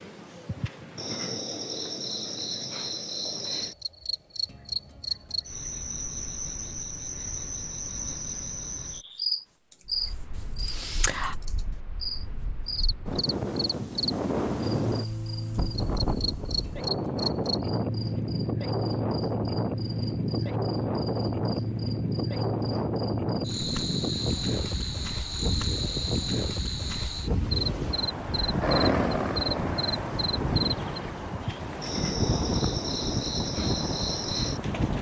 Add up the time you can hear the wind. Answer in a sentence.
You can hear the wind for 25 seconds altogether.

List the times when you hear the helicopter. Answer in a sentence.
The helicopter can be heard from 27.4 to 30.4 s.